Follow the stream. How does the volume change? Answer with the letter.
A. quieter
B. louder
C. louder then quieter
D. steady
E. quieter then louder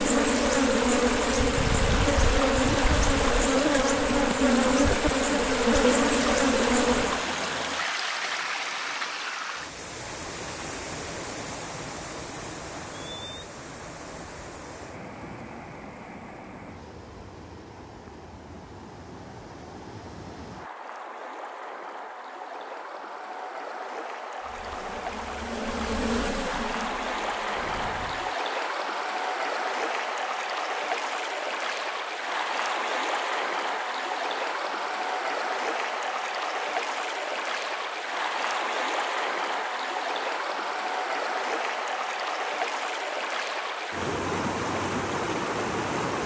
E.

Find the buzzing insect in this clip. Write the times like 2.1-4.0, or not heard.
0.0-7.2, 24.4-28.4.